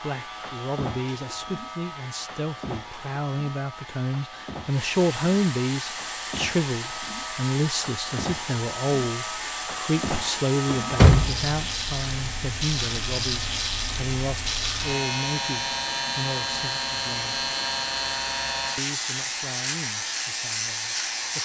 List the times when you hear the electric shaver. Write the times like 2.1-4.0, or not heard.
0.0-21.4.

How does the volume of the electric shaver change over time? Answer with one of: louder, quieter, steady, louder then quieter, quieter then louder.
louder.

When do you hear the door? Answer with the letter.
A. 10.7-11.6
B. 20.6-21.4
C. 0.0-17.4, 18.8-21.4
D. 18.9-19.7
A.